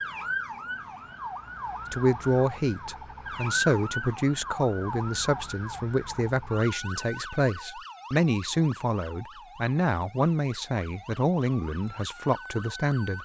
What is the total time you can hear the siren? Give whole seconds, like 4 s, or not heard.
13 s.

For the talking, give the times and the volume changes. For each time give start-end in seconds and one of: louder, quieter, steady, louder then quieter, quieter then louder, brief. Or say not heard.
1.9-13.1 steady.